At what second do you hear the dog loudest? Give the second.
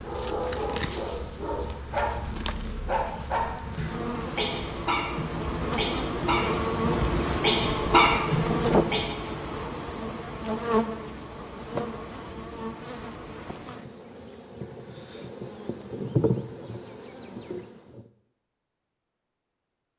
8 s.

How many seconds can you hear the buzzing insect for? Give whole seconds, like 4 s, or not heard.
18 s.